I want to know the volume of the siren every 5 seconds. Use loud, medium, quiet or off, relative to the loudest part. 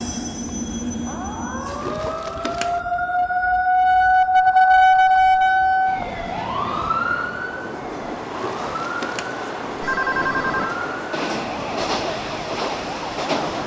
loud, loud, quiet.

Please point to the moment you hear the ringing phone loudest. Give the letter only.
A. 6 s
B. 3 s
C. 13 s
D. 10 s
D.